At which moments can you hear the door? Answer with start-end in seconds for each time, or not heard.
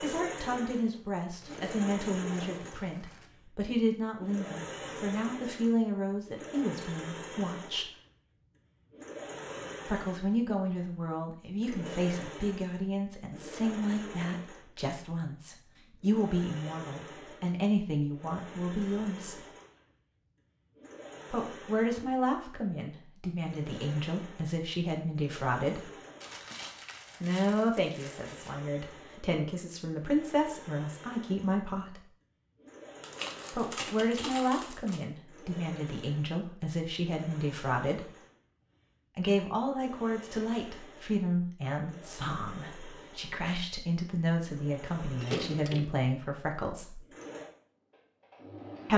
45.1-46.0.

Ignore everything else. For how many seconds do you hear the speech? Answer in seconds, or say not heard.
39 s.